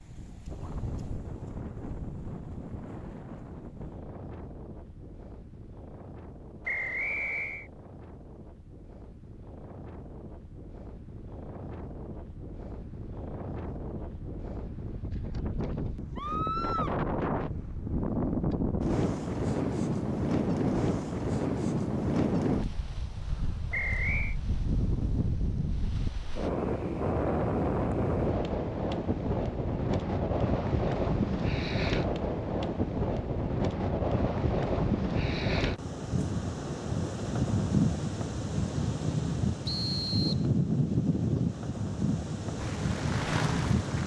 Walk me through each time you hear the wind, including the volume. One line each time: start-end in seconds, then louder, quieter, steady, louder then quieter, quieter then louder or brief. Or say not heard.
0.0-44.0 louder.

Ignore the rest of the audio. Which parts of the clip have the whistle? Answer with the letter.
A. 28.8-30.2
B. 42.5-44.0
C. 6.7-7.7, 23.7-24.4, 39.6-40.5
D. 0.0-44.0
C.